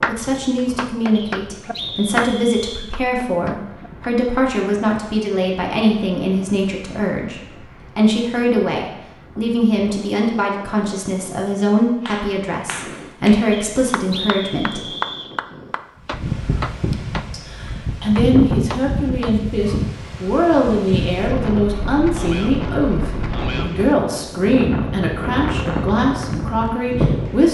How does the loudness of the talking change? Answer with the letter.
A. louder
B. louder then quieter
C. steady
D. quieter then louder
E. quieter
C.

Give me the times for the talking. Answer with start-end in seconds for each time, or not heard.
0.1-14.9, 17.3-27.4.